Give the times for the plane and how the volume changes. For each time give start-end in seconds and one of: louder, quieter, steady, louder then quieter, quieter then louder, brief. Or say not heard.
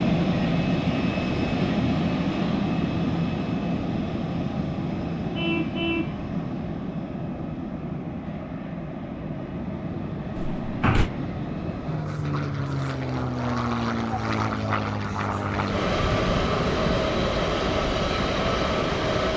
0.0-19.3 quieter then louder.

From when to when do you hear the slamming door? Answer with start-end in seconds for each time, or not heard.
10.3-11.1.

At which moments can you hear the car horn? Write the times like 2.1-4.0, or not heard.
5.3-6.2.